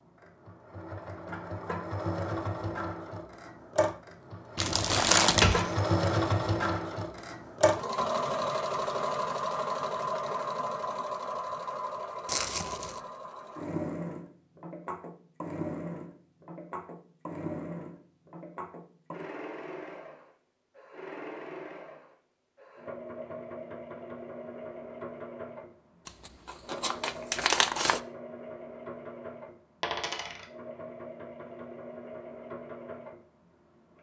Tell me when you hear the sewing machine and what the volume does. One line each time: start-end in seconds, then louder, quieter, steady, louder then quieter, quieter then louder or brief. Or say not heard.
0.0-33.9 quieter.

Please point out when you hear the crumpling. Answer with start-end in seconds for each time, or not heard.
4.5-5.6, 12.2-13.0, 26.1-28.0.